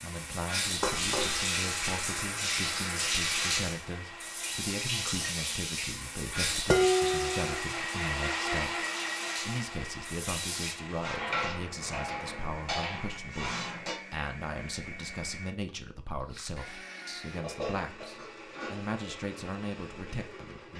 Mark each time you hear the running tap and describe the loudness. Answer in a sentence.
The running tap can be heard from 0.0 to 10.8 s, getting quieter.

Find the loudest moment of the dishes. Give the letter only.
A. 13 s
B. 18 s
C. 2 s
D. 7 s
D.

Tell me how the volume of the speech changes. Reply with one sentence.
The loudness of the speech stays about the same.